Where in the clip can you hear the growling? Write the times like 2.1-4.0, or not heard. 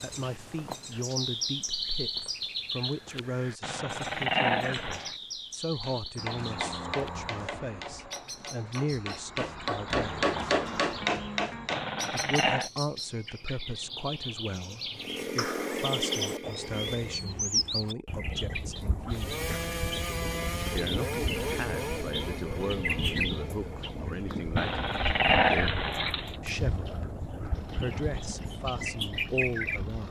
3.6-5.2, 11.7-12.7, 24.6-26.4.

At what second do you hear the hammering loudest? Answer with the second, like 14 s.
10 s.